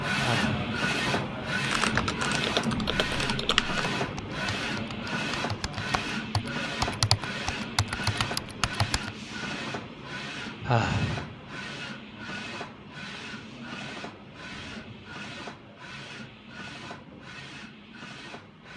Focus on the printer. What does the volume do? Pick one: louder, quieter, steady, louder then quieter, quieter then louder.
quieter.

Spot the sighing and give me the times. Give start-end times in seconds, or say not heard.
0.1-0.7, 10.6-11.3.